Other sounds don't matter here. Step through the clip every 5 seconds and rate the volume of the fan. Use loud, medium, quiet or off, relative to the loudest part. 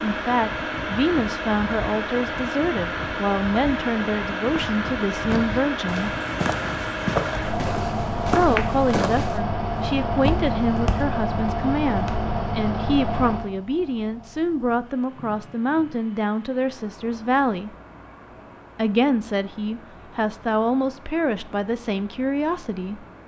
loud, loud, loud, quiet, quiet.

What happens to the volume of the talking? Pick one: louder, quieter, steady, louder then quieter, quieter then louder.
steady.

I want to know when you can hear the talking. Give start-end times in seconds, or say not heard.
0.0-6.2, 8.2-17.7, 18.8-23.1.